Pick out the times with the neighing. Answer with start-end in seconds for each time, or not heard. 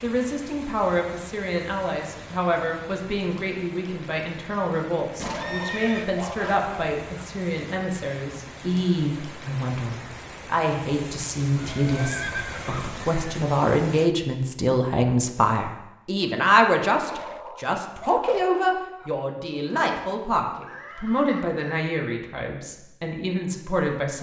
5.2-6.0, 11.6-13.2, 20.6-21.9.